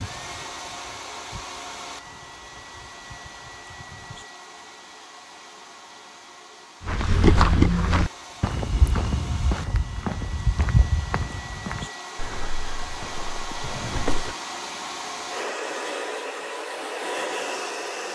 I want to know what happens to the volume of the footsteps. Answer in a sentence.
The volume of the footsteps goes down.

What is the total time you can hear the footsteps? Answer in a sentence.
You can hear the footsteps for 7 seconds altogether.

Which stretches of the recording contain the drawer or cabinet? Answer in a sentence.
You can hear the drawer or cabinet from 13.6 to 14.3 s.